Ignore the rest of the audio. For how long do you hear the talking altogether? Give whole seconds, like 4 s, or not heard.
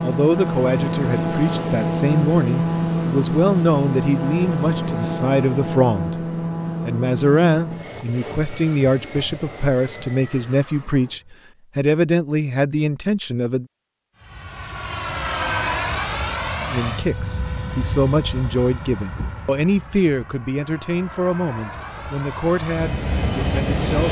20 s.